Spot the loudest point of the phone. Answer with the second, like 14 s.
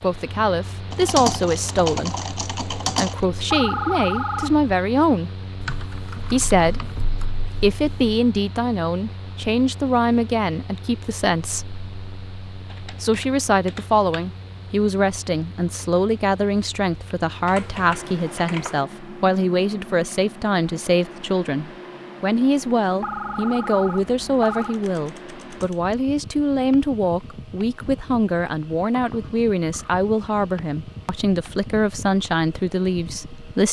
4 s.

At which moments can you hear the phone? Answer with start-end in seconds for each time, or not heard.
3.5-4.7, 23.0-24.8.